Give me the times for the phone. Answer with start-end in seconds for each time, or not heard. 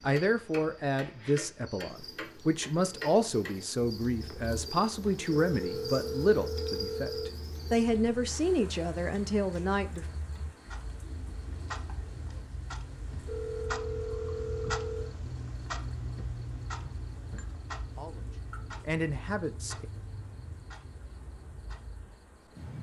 5.5-7.3, 13.2-15.1.